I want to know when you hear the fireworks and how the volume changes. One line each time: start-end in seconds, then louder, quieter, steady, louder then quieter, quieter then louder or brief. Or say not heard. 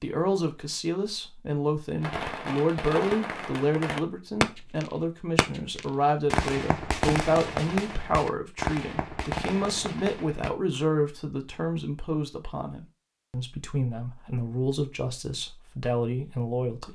2.0-10.5 louder then quieter.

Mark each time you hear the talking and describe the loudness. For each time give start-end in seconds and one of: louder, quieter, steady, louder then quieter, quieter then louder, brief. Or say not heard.
0.0-16.9 steady.